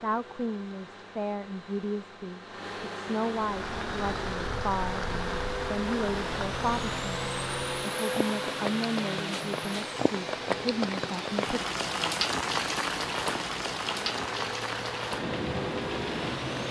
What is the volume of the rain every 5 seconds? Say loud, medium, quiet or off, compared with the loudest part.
medium, medium, loud, loud.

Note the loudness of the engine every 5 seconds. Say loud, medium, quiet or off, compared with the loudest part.
medium, loud, medium, loud.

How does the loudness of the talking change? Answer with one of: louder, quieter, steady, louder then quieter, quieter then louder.
steady.